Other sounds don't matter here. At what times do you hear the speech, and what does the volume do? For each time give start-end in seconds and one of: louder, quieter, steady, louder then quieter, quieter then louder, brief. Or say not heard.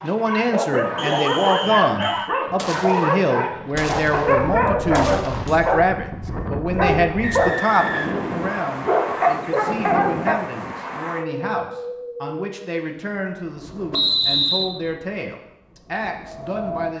0.0-16.9 quieter.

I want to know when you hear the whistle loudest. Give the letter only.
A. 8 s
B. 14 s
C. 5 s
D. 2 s
B.